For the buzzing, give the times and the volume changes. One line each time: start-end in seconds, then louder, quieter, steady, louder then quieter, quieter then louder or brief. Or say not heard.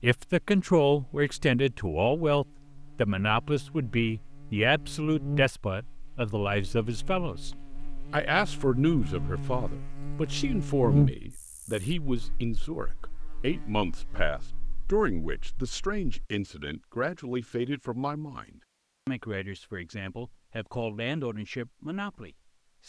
0.1-16.3 louder then quieter.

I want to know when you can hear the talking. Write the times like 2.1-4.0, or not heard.
0.0-22.8.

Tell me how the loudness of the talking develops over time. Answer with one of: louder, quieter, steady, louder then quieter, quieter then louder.
quieter.